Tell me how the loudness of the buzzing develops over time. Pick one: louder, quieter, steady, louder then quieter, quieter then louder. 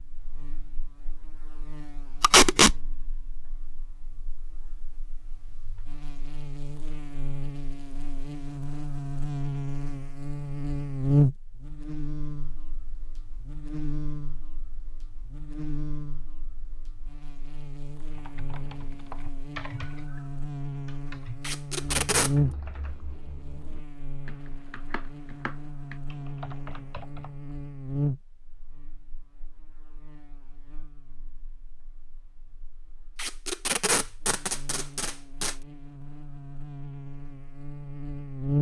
louder then quieter.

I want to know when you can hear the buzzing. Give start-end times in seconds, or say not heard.
0.0-38.5.